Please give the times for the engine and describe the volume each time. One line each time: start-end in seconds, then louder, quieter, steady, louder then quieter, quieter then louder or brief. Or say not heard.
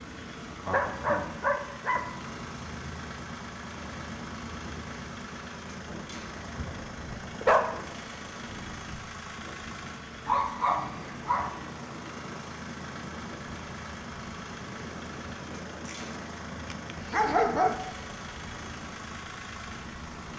0.0-20.3 steady.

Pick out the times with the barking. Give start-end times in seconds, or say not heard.
0.7-2.1, 6.2-7.7, 10.2-11.6, 15.8-17.8.